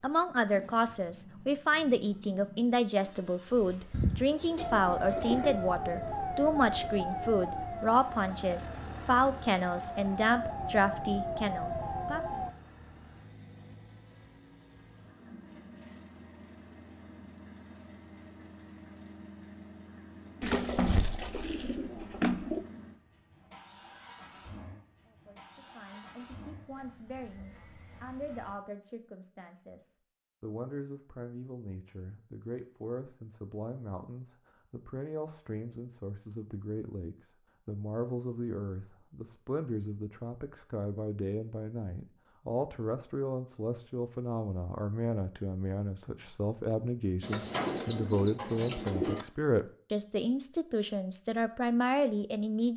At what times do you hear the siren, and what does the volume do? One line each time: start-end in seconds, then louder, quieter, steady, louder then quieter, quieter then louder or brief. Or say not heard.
4.5-12.6 quieter then louder.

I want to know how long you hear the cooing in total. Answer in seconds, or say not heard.
6 s.